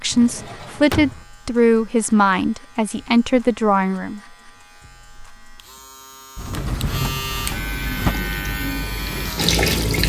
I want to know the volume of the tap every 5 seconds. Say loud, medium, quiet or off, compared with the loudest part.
off, loud.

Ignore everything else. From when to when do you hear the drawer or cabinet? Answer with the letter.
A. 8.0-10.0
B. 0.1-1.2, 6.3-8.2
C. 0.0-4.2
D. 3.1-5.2
B.